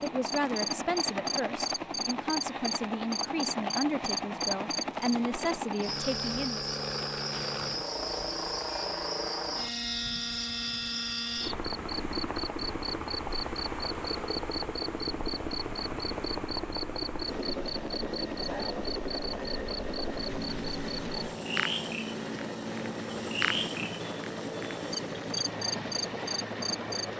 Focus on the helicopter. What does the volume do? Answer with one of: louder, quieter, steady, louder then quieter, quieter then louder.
steady.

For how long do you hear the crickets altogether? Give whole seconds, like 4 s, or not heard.
27 s.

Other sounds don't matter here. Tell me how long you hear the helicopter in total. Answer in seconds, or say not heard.
27 s.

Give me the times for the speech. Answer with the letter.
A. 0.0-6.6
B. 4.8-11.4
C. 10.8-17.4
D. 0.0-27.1
A.